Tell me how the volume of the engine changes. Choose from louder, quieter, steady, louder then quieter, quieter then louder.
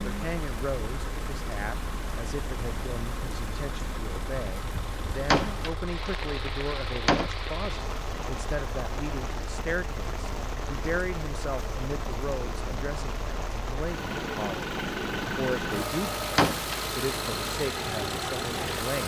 louder.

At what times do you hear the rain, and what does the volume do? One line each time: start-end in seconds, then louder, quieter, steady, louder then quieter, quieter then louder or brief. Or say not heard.
0.0-19.0 steady.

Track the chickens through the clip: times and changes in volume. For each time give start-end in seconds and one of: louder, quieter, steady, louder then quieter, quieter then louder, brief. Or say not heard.
not heard.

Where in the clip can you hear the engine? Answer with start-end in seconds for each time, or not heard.
0.0-19.0.